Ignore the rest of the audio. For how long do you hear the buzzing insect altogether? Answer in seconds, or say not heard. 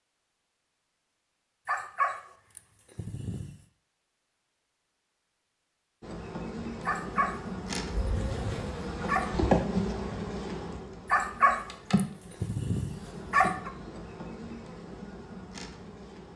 10 s.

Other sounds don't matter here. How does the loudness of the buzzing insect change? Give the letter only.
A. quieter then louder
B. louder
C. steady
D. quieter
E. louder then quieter
E.